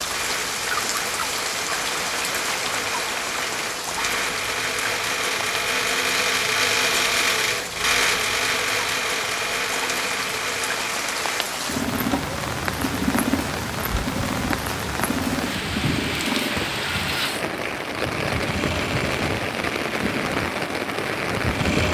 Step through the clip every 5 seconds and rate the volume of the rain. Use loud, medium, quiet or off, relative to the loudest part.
loud, medium, loud, loud, loud.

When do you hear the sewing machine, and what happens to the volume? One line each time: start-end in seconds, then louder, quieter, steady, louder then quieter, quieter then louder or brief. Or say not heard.
0.0-21.8 louder then quieter.